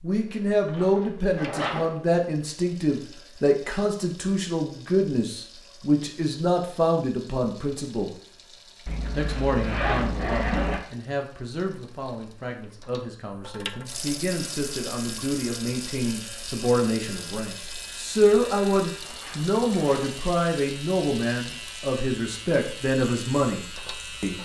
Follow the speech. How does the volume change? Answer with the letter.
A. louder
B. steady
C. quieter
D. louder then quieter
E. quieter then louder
E.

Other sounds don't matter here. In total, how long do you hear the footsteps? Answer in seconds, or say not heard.
not heard.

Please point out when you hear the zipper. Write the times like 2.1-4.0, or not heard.
0.7-1.9, 8.8-10.8, 19.0-20.1.